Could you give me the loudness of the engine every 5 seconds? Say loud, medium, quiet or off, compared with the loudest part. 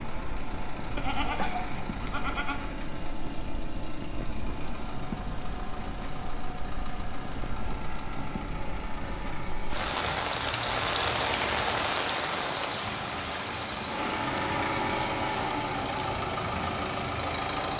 medium, medium, loud, loud.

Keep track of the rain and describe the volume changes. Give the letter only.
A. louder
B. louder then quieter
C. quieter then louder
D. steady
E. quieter
B.